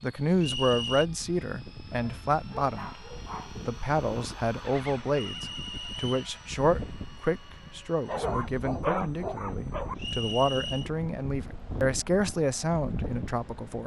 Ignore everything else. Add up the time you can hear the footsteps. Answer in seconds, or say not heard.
not heard.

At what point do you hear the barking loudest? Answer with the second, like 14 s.
9 s.